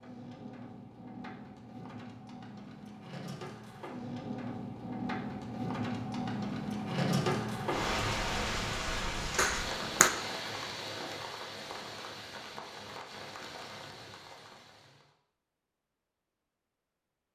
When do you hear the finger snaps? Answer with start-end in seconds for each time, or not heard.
9.3-10.1.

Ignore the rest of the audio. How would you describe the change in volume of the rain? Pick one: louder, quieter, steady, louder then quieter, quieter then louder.
louder then quieter.